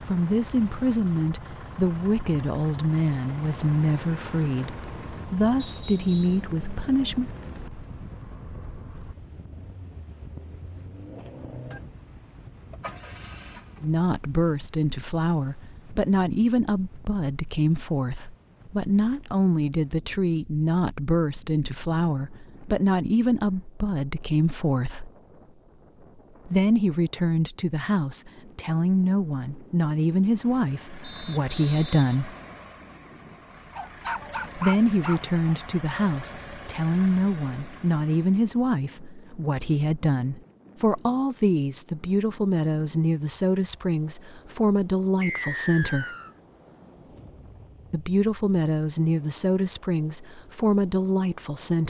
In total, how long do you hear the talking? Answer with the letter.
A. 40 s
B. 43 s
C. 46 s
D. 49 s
A.